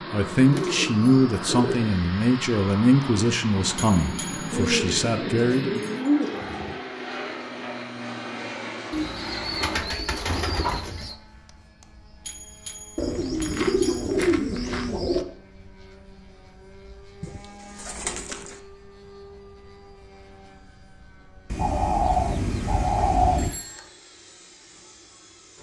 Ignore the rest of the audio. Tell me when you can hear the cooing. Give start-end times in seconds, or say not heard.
0.5-1.9, 4.5-6.8, 8.9-11.2, 12.9-15.2, 17.2-18.6, 21.5-23.5.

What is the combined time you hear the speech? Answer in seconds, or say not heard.
6 s.